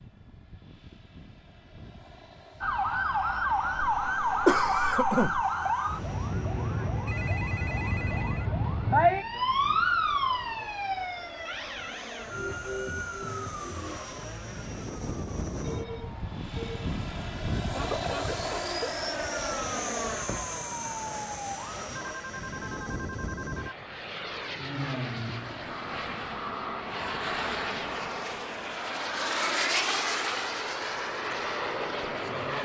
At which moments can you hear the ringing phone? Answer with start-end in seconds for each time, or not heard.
7.0-8.6, 15.6-16.9, 21.9-23.8.